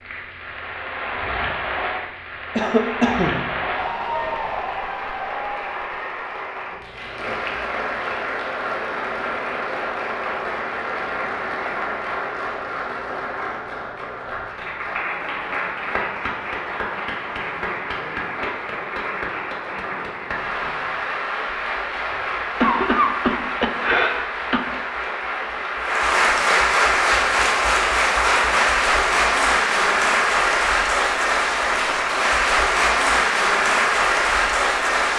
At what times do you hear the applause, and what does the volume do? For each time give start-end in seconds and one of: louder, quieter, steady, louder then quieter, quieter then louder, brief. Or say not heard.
0.0-35.1 louder.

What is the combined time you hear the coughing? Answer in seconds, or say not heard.
3 s.